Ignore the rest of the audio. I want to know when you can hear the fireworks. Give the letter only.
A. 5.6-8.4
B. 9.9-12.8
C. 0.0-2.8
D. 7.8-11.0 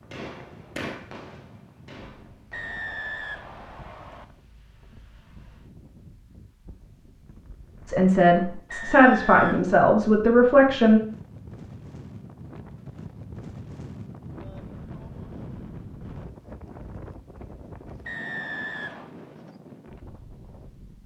C.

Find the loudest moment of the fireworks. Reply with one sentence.
The loudest moment of the fireworks is at 1 second.